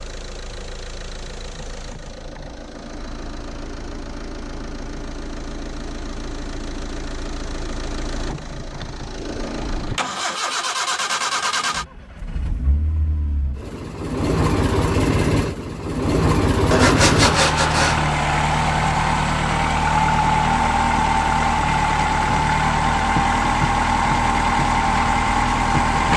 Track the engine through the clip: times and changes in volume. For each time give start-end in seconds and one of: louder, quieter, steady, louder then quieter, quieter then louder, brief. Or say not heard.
0.0-26.1 louder.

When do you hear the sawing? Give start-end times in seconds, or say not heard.
16.7-18.1.